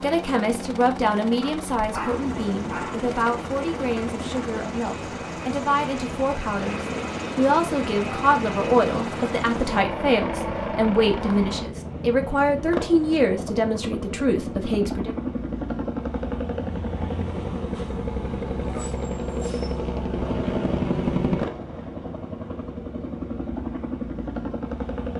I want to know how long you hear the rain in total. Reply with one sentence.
You can't hear the rain here.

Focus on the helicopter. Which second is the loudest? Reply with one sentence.
The loudest moment of the helicopter is at 21 seconds.